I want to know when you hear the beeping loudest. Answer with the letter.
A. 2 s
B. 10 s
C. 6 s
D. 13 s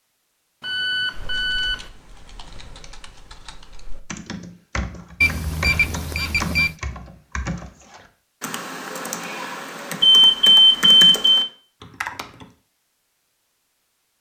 B.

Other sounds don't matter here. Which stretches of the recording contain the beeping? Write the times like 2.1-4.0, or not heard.
0.6-1.9, 5.2-6.8, 10.0-11.4.